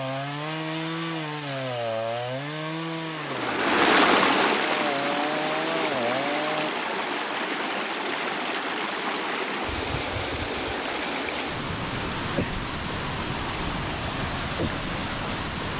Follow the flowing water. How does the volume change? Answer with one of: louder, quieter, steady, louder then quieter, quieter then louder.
quieter.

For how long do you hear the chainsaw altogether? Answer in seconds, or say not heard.
7 s.